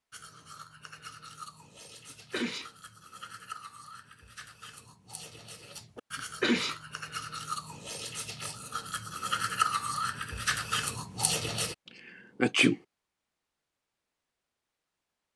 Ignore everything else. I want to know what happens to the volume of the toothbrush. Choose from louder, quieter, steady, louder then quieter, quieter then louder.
louder.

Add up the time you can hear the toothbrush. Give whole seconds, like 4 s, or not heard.
12 s.